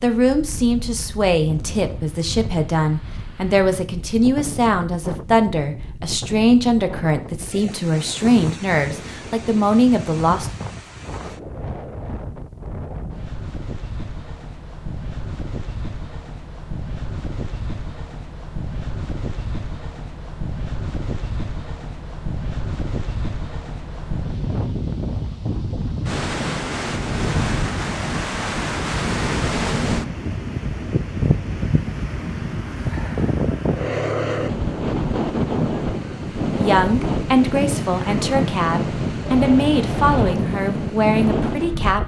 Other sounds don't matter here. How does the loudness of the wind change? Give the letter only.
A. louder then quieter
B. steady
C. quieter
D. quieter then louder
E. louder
E.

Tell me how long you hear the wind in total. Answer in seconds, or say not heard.
42 s.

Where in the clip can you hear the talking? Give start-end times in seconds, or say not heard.
0.0-10.5, 36.5-42.0.